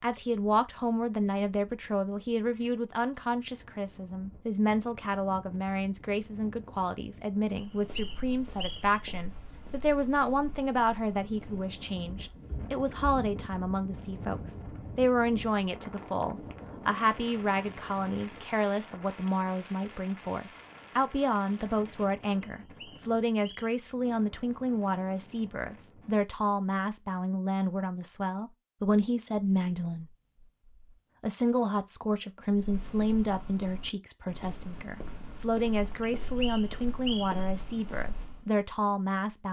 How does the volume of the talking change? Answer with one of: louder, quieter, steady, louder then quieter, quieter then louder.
steady.